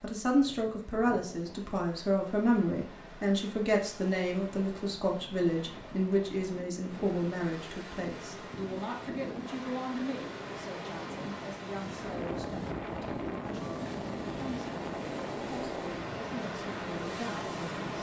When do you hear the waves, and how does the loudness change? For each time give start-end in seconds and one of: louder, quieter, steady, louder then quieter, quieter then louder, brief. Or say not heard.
0.0-17.9 louder.